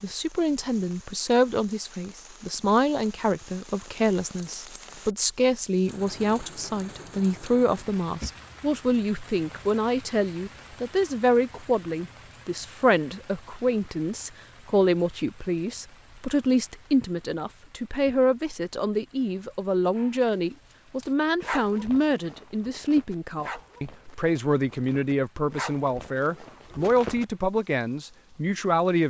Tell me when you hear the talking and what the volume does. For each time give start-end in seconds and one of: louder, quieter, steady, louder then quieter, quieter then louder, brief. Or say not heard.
0.0-29.0 steady.